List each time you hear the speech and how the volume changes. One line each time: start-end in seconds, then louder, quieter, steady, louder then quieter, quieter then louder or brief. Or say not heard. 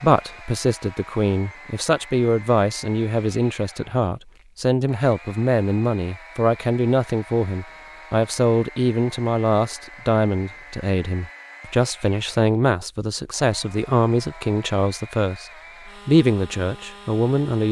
0.0-17.6 steady.